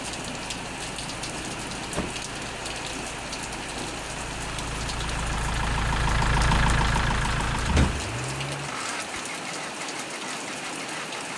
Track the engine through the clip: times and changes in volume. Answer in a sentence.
You can hear the engine from 0.0 to 11.3 s, getting louder then quieter.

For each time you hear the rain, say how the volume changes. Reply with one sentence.
The rain can be heard from 0.0 to 11.3 s, at a steady volume.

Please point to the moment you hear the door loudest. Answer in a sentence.
The loudest moment of the door is at 8 seconds.